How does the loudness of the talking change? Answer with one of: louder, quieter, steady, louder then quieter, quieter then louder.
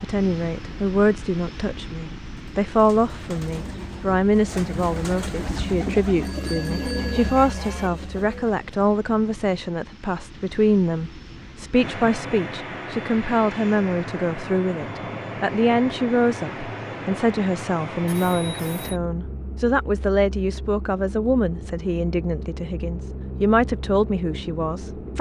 steady.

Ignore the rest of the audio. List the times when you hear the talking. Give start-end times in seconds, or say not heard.
0.0-25.1.